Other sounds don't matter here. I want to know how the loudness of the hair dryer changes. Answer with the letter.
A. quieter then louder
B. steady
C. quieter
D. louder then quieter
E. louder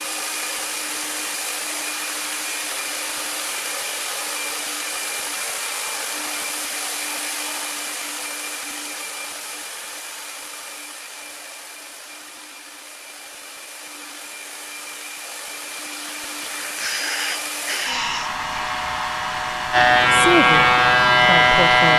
A.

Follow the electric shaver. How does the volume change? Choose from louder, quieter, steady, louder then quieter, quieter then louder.
louder.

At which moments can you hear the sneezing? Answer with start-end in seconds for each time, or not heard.
16.4-18.3.